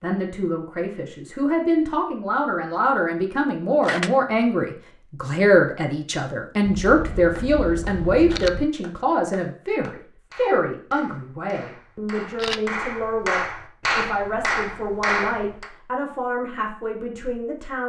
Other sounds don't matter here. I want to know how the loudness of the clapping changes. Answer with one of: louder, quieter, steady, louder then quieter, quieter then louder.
louder.